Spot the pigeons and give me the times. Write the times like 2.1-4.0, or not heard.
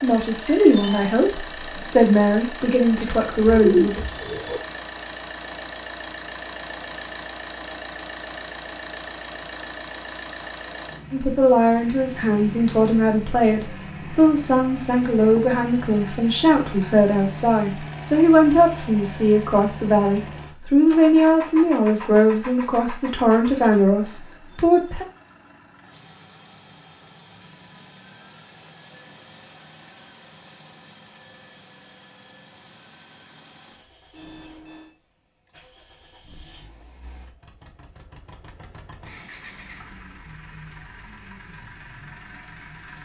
3.0-4.6.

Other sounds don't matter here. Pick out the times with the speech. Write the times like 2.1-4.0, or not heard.
0.0-4.0, 11.1-25.1.